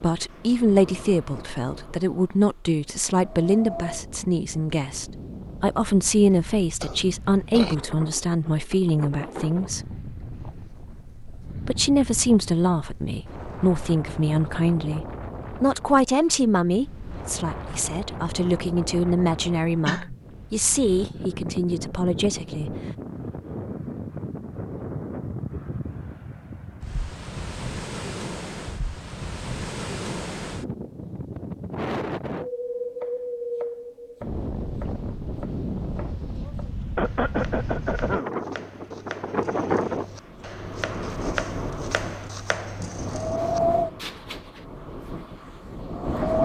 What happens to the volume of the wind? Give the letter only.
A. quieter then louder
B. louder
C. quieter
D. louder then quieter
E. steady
B.